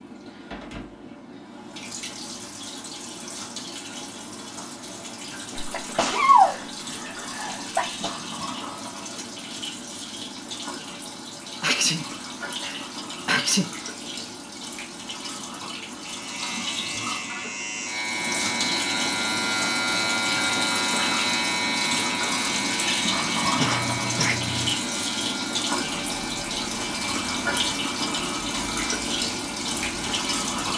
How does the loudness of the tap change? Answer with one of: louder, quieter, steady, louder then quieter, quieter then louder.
louder.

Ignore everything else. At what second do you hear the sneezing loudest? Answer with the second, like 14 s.
6 s.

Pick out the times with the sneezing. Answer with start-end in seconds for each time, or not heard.
5.5-8.2, 11.6-13.7, 23.6-24.7.